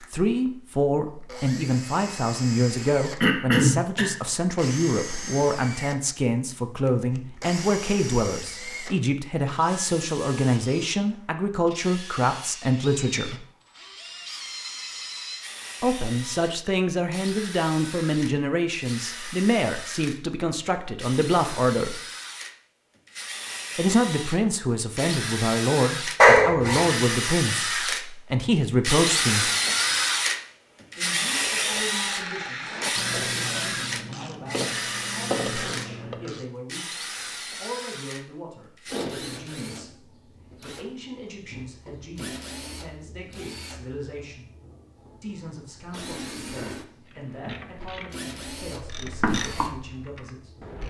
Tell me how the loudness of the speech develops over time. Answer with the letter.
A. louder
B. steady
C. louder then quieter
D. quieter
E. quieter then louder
D.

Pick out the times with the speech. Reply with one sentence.
You can hear the speech from 0.1 to 13.4 s, from 15.8 to 22.0 s, from 23.8 to 29.5 s, from 30.9 to 44.5 s and from 45.2 to 50.7 s.